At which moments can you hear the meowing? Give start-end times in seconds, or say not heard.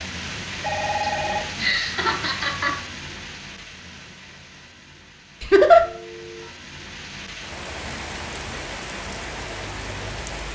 not heard.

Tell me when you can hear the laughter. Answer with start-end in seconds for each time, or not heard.
1.0-2.8, 5.4-5.8.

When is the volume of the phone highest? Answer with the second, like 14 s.
1 s.